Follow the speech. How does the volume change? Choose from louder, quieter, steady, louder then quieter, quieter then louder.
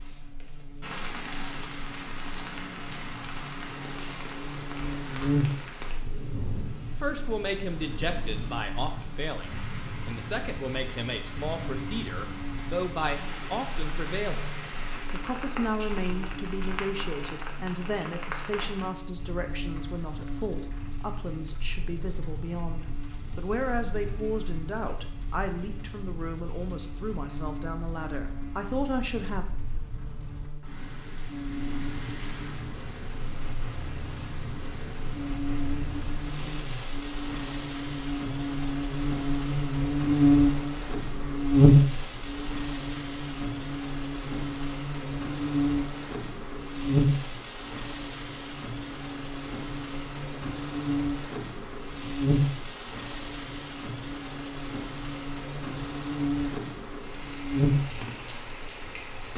steady.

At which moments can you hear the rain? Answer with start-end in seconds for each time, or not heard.
0.0-59.3.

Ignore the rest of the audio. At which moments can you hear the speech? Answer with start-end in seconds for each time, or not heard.
7.0-29.4.